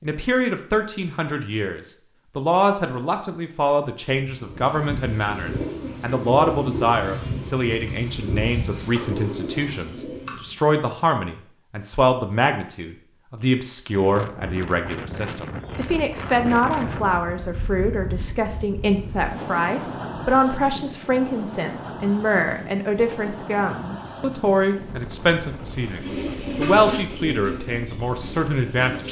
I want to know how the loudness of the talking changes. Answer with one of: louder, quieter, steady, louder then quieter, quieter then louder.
steady.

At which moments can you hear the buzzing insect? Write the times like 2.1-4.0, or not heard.
not heard.